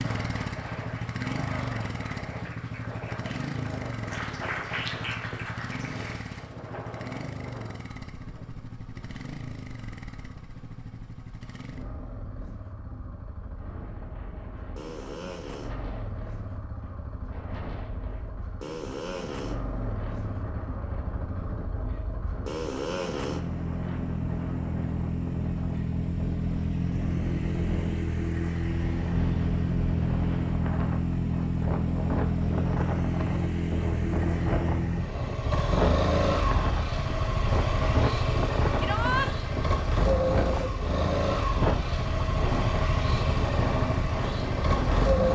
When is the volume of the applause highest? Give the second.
5 s.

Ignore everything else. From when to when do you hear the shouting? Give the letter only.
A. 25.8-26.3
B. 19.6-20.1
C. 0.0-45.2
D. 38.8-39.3
D.